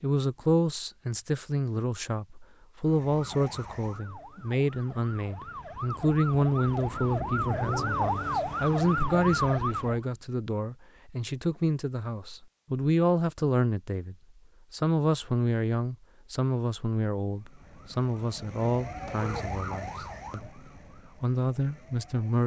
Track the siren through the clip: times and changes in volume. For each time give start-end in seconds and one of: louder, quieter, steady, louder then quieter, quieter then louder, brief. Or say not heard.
2.8-10.0 louder
17.2-22.4 louder then quieter.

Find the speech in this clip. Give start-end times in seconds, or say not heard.
0.0-20.6, 21.2-22.4.